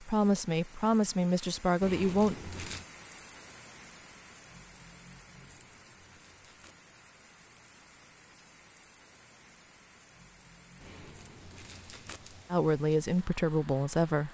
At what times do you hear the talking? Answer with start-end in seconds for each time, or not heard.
0.0-2.4, 12.5-14.2.